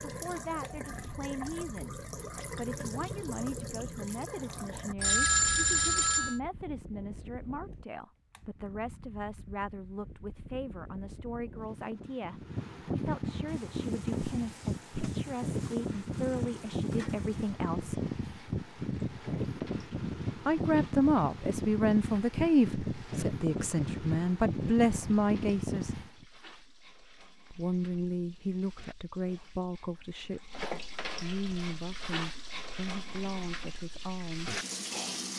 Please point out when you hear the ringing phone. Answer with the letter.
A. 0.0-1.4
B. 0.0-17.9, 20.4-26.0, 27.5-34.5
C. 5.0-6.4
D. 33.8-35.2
C.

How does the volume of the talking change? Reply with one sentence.
The volume of the talking goes up, then down.